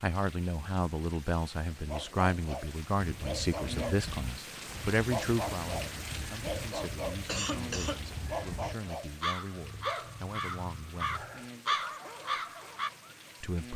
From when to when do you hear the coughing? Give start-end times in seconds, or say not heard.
7.2-8.0.